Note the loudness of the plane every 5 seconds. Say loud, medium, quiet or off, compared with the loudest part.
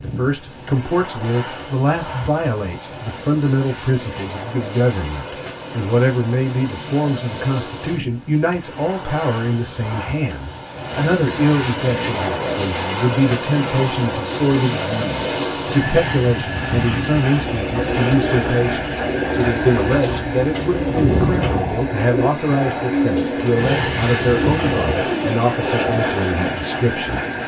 medium, medium, loud, loud, loud, loud.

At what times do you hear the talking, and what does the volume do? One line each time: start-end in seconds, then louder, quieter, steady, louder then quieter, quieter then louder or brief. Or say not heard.
0.0-27.2 steady.